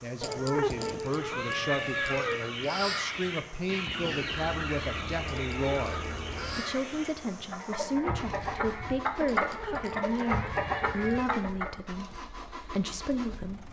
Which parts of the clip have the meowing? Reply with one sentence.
The meowing can be heard from 0.2 to 2.5 s, from 5.2 to 6.8 s and from 9.2 to 11.4 s.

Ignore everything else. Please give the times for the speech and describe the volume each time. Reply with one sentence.
You can hear the speech from 0.0 to 13.6 s, at a steady volume.